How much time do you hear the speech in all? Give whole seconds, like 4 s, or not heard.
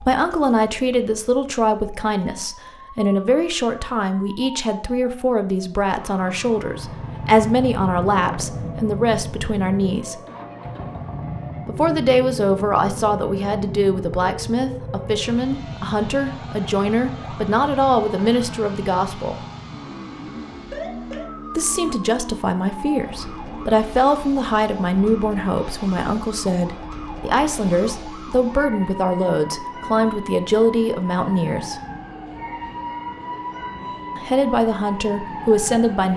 30 s.